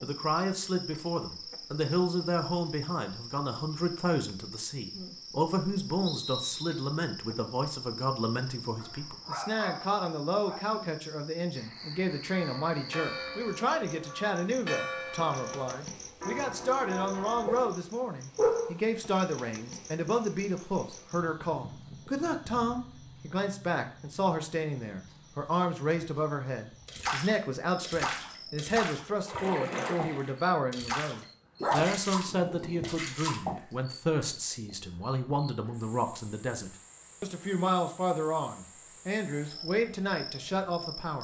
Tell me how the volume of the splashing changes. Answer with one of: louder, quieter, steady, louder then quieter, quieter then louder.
steady.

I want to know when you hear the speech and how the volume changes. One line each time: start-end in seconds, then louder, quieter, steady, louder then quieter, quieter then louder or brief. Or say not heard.
0.0-41.1 steady.